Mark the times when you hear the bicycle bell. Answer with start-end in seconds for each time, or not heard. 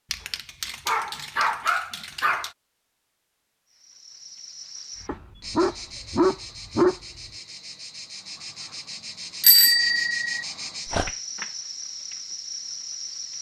9.4-10.4.